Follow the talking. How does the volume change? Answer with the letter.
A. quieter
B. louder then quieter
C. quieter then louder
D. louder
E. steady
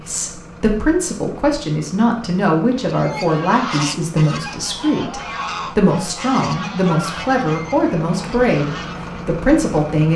E.